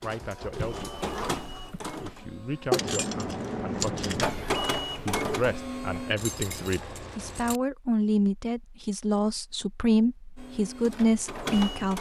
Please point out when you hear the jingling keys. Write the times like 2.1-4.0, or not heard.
2.7-4.3, 6.2-7.6.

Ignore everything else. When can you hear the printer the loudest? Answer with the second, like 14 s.
5 s.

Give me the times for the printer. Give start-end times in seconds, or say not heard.
0.0-2.8, 4.2-6.2, 10.3-11.9.